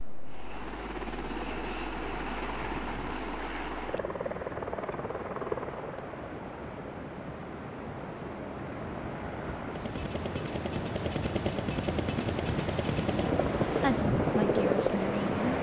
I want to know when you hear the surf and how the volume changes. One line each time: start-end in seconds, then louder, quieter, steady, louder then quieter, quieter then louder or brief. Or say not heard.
0.0-15.5 louder.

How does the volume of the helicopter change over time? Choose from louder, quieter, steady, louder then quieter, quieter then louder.
quieter then louder.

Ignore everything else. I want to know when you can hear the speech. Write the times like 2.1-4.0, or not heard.
13.7-15.5.